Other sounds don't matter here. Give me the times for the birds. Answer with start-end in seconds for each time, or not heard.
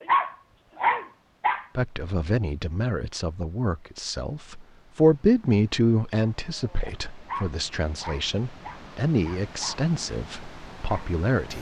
not heard.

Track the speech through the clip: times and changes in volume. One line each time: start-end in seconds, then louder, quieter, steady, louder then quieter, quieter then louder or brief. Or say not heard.
1.8-11.5 louder then quieter.